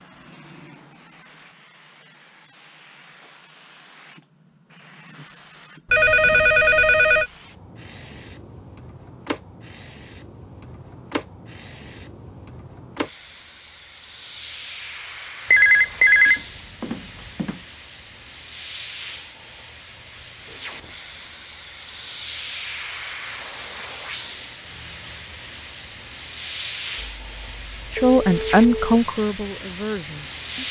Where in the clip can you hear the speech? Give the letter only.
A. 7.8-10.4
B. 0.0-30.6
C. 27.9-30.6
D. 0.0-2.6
C.